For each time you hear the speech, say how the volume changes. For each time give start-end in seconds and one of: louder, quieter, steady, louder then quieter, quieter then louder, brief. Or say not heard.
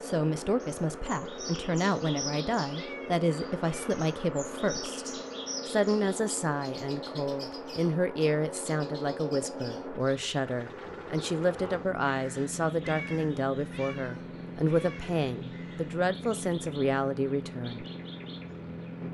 0.0-17.9 steady.